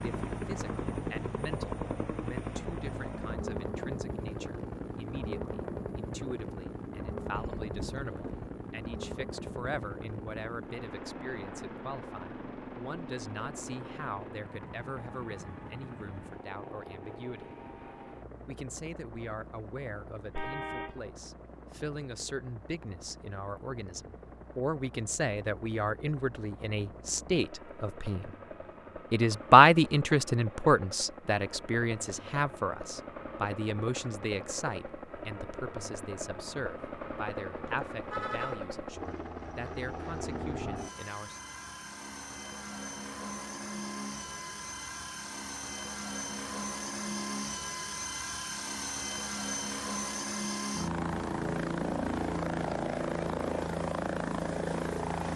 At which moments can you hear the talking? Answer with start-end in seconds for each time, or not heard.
0.0-17.6, 18.4-28.4, 29.1-41.4.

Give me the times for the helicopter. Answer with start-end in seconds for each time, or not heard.
0.0-55.3.